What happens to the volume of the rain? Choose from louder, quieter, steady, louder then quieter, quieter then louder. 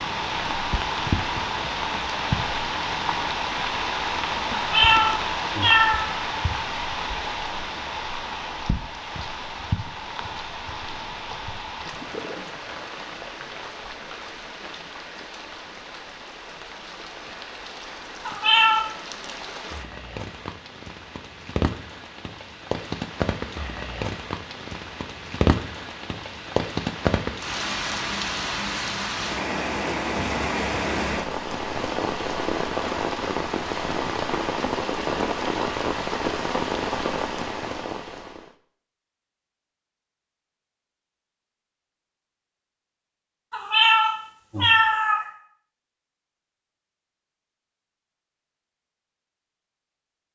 quieter then louder.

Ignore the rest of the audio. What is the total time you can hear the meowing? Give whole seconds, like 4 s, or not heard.
4 s.